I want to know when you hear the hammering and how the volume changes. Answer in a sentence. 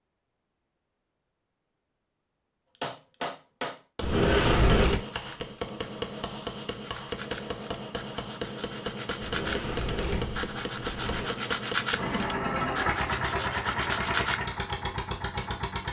The hammering can be heard from 2.8 to 12.3 s, at a steady volume.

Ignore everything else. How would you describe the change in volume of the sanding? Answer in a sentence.
The volume of the sanding goes up.